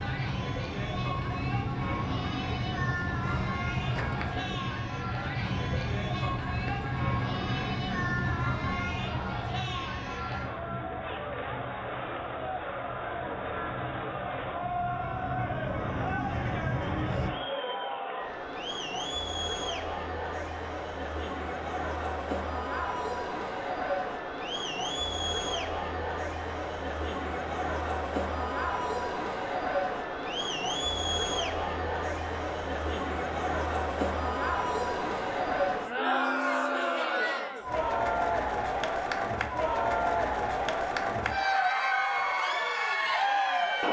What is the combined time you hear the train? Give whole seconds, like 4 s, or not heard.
17 s.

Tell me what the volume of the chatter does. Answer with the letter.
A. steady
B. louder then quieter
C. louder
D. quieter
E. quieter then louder
C.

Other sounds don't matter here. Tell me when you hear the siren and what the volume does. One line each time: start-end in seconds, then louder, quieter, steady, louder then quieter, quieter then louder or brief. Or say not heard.
not heard.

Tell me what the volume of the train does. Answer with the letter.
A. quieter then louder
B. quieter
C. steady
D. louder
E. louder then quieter
A.